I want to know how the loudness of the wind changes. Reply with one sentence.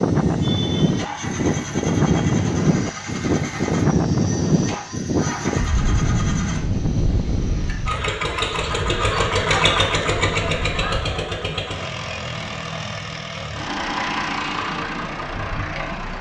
The volume of the wind goes down.